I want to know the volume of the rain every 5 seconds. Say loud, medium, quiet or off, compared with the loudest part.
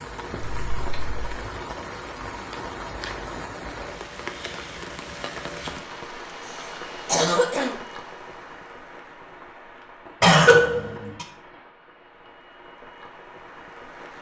loud, loud, medium.